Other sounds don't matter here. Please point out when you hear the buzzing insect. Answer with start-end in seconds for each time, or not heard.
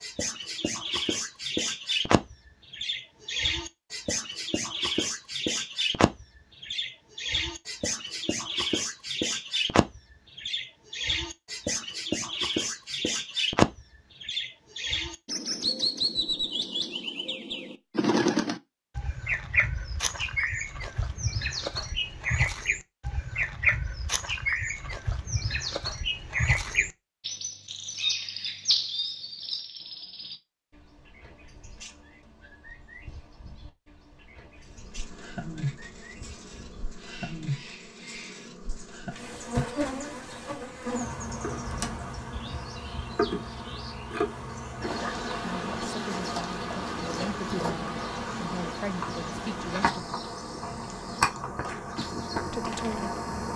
34.9-53.5.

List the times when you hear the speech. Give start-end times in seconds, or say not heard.
45.4-50.0, 52.4-53.5.